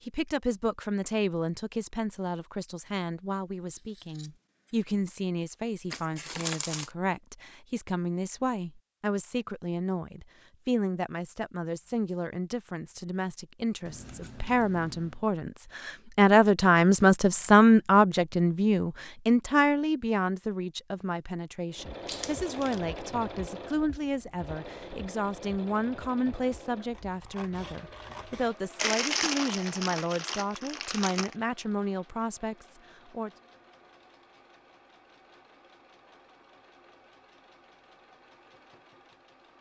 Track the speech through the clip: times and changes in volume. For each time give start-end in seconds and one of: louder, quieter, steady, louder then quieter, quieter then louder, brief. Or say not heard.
0.1-33.3 louder then quieter.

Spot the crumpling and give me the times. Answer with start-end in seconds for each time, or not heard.
5.9-6.9, 22.1-22.8, 28.8-31.4.